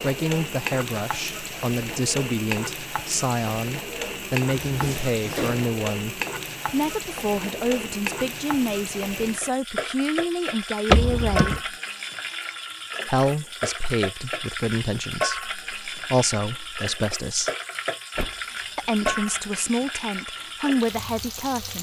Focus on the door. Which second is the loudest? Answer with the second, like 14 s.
11 s.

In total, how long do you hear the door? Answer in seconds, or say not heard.
3 s.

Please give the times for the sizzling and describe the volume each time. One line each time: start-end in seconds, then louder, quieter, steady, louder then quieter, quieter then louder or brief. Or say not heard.
0.0-21.7 steady.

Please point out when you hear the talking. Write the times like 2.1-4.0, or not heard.
0.0-11.7, 13.1-17.5, 18.8-21.7.